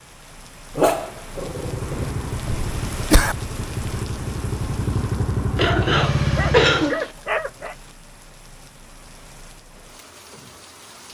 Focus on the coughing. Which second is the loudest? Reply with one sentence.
The volume of the coughing peaks at 7 seconds.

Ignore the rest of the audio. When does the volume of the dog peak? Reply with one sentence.
The loudest moment of the dog is at 1 second.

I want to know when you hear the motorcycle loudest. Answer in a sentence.
The loudest moment of the motorcycle is at 6 seconds.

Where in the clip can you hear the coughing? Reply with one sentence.
You can hear the coughing from 2.5 to 3.4 s and from 5.5 to 7.0 s.